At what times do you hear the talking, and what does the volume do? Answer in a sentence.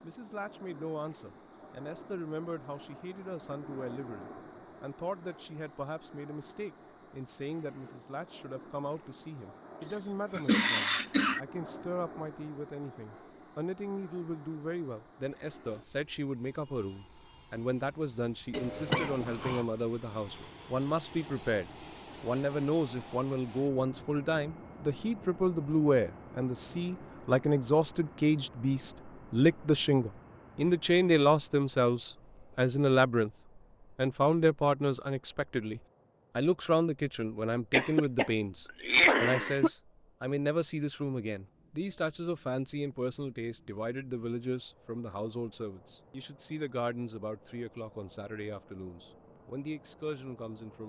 The talking can be heard from 0.0 to 33.3 s, getting louder; and from 34.0 to 50.8 s, getting quieter.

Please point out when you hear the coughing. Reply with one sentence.
The coughing can be heard from 9.8 to 11.4 s, from 18.5 to 19.6 s and from 37.7 to 39.7 s.